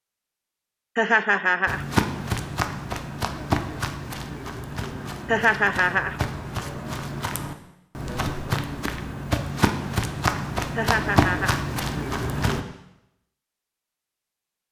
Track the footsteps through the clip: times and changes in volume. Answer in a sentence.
You can hear the footsteps from 1.6 to 12.7 s, getting quieter then louder.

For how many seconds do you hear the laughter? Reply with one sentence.
The laughter can be heard for 3 seconds in total.